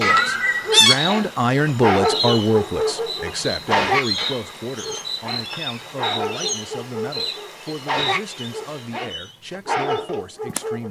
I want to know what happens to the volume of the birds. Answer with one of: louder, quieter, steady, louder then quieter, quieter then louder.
quieter.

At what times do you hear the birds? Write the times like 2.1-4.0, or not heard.
0.0-10.8.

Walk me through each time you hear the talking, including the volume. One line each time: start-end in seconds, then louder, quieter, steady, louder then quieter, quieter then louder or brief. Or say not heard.
0.0-10.8 quieter.